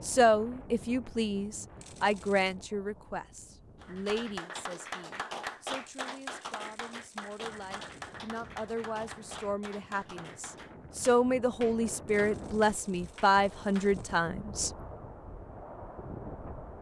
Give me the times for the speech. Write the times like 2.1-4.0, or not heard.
0.0-14.7.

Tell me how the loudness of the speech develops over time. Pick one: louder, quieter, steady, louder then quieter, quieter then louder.
quieter then louder.